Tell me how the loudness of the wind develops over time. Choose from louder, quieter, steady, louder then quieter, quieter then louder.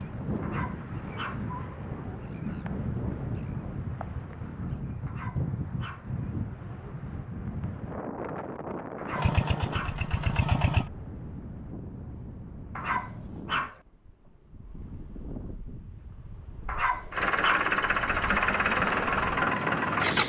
quieter.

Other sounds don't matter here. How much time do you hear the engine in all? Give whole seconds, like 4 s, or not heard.
5 s.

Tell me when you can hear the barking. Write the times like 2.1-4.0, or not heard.
0.4-1.4, 5.0-6.1, 8.9-10.1, 12.8-13.8, 16.6-17.8.